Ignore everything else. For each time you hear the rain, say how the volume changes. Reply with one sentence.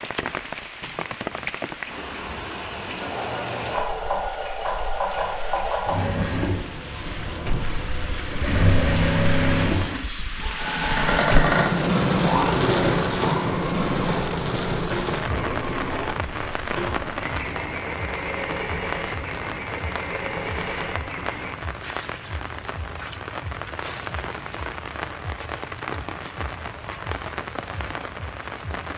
You can hear the rain from 0.0 to 28.9 s, getting louder then quieter.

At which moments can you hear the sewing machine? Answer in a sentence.
You can hear the sewing machine from 3.0 to 21.6 s.